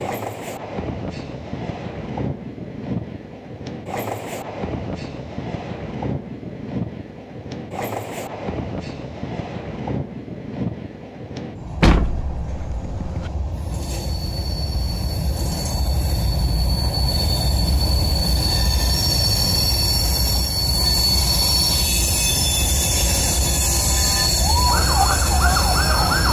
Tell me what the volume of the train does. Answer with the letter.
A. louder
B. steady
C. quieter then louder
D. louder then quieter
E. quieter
A.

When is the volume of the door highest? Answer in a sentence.
The volume of the door peaks at 12 seconds.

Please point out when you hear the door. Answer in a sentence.
You can hear the door from 11.8 to 13.3 s.